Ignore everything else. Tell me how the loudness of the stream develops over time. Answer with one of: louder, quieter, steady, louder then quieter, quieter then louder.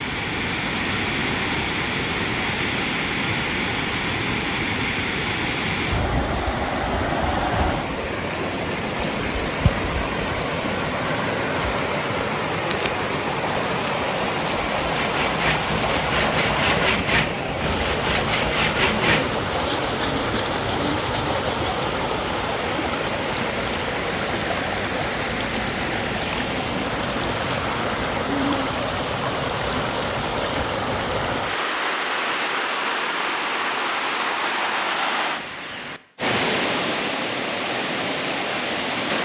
steady.